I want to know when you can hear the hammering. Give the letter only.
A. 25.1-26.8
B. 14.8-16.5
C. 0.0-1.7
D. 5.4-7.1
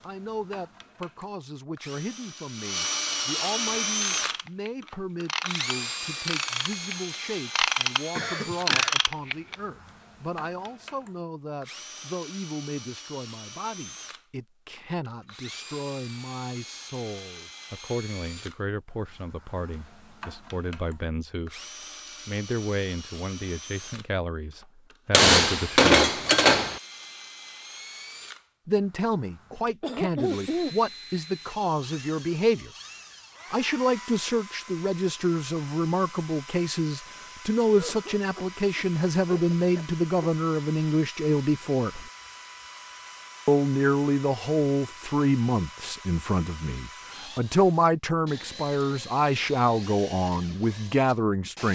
A.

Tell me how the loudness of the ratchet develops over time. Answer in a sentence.
The volume of the ratchet goes up.